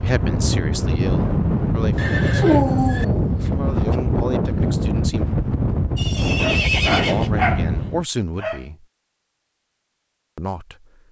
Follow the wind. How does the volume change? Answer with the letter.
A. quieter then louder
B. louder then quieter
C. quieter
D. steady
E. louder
D.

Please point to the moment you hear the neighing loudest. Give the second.
7 s.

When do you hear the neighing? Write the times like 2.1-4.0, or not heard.
1.9-3.0, 6.0-7.3.